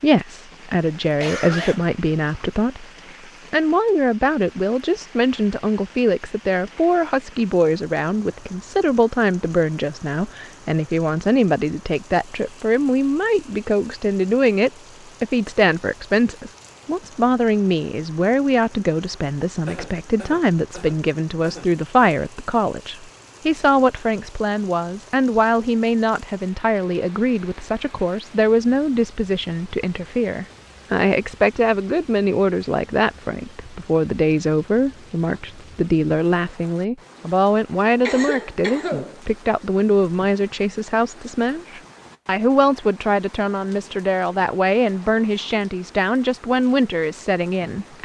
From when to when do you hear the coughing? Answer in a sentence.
The coughing can be heard from 1.2 to 2.5 s, from 19.6 to 21.6 s and from 38.0 to 39.1 s.